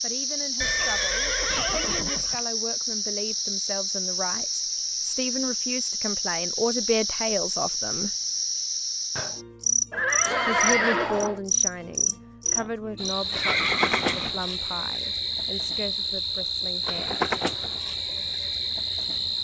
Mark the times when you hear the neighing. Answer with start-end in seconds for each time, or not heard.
0.6-2.4, 9.9-11.4, 13.3-14.3.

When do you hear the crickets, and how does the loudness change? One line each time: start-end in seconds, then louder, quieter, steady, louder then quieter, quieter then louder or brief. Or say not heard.
0.0-19.4 steady.